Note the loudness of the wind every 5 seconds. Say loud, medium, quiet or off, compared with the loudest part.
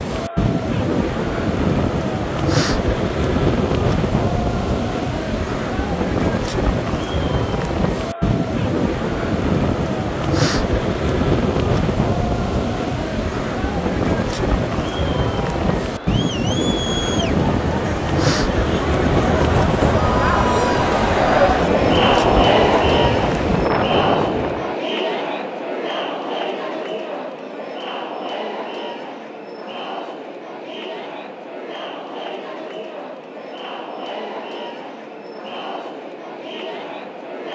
loud, loud, loud, loud, loud, off, off, off.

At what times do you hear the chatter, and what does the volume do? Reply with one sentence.
You can hear the chatter from 0.0 to 37.4 s, getting louder then quieter.